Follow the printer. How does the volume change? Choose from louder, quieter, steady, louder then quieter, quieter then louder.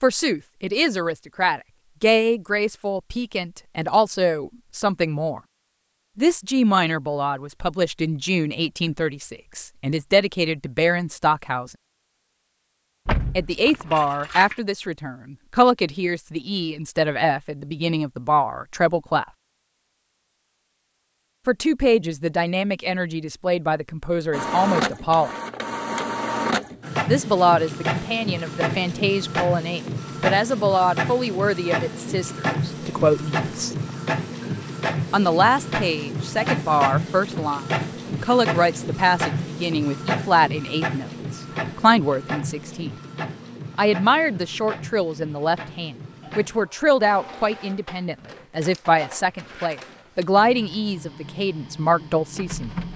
quieter.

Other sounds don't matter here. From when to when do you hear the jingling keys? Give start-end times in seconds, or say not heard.
13.1-14.6.